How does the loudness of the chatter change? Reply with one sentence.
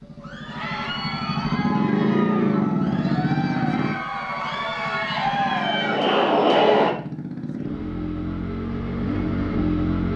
The volume of the chatter goes up.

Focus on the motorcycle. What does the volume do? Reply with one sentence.
The loudness of the motorcycle goes down, then up.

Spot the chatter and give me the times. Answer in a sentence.
You can hear the chatter from 0.1 to 7.0 s.